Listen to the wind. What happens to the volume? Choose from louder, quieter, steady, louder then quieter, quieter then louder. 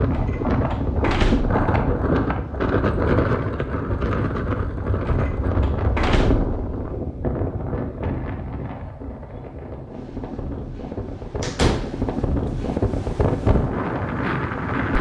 quieter then louder.